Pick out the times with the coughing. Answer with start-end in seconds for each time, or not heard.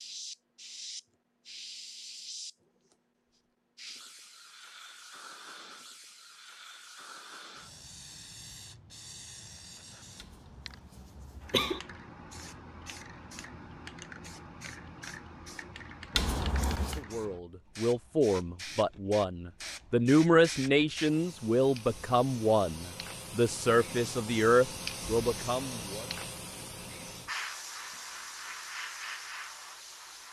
10.2-11.8, 16.1-17.0.